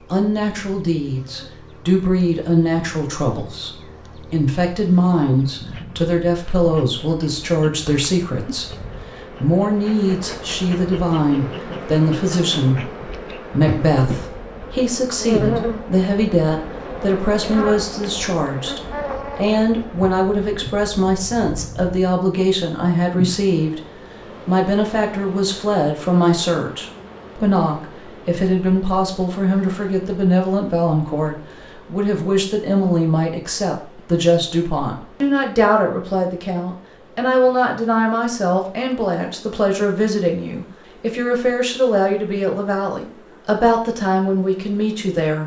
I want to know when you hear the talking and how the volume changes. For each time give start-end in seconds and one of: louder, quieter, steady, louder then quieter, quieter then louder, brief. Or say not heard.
0.1-45.4 steady.